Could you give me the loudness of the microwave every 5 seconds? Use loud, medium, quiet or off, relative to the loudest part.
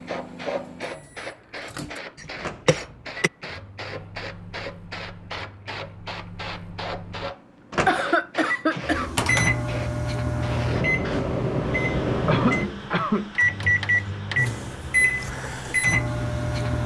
quiet, medium, loud, loud.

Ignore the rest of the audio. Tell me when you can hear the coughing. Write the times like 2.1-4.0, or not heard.
2.6-3.3, 7.8-9.1, 12.2-13.3.